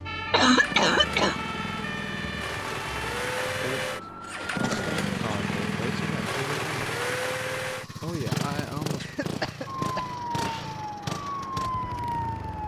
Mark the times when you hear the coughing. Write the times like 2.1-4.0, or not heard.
0.3-1.4, 4.6-5.4, 9.0-10.7.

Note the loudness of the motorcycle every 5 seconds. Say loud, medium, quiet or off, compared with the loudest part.
loud, loud, medium.